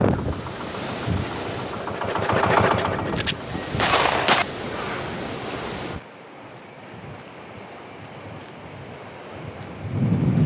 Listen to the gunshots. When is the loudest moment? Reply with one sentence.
The volume of the gunshots peaks at 4 seconds.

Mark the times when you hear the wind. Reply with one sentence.
The wind can be heard from 0.0 to 10.4 s.